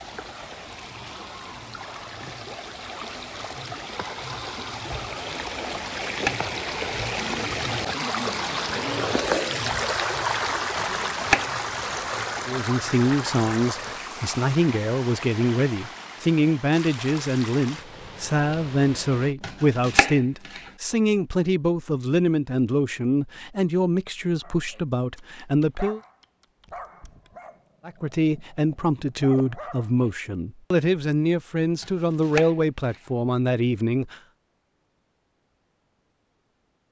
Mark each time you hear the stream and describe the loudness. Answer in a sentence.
You can hear the stream from 0.0 to 19.4 s, getting louder then quieter.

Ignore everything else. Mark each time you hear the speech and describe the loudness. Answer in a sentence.
The speech can be heard from 12.4 to 26.0 s, at a steady volume; and from 27.9 to 34.1 s, at a steady volume.